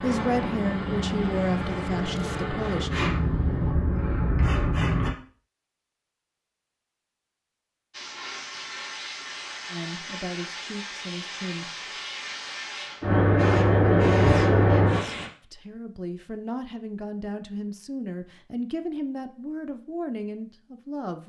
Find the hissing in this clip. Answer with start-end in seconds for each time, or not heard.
0.0-5.1, 7.9-15.3.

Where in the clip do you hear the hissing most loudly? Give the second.
14 s.